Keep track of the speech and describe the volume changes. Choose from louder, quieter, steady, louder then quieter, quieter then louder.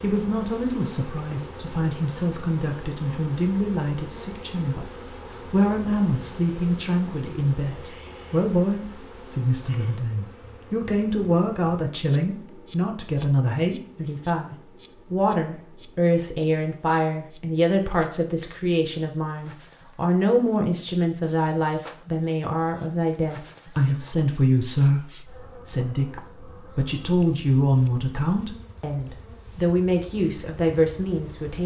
steady.